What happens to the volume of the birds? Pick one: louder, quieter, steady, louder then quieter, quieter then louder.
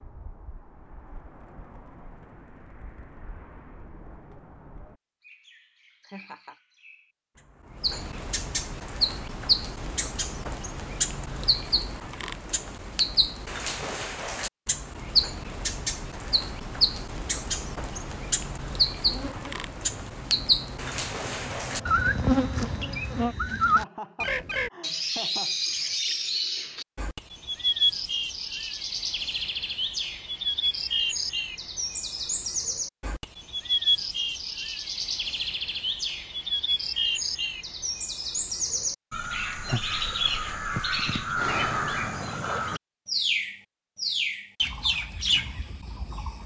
louder.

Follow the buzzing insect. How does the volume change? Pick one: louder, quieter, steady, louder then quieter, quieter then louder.
louder.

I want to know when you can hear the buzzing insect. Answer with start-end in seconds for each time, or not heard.
19.1-23.4.